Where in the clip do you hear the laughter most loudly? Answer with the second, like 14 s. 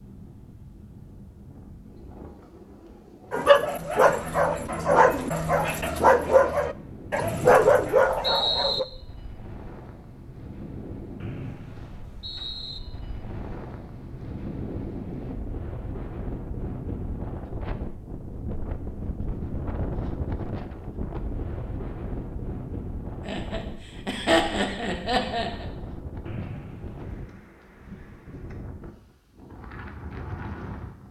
24 s.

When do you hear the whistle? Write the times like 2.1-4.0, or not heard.
7.2-8.8, 11.2-12.8, 26.2-27.2.